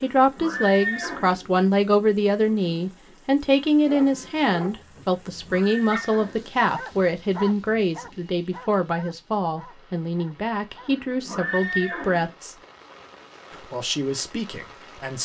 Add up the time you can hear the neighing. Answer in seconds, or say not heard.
4 s.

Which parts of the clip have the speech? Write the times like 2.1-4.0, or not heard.
0.0-12.6, 13.6-15.1.